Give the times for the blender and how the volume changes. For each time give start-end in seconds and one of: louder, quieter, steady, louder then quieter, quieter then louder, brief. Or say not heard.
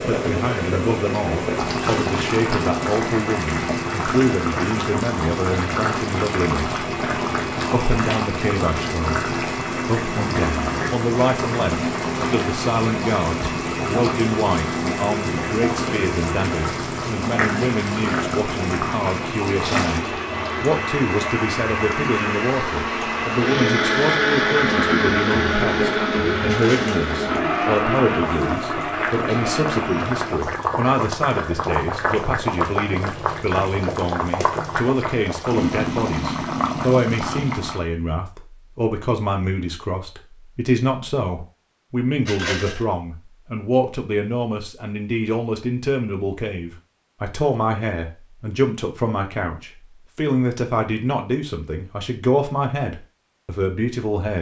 0.0-30.4 louder.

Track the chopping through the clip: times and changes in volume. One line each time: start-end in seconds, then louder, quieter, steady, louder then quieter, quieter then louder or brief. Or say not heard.
not heard.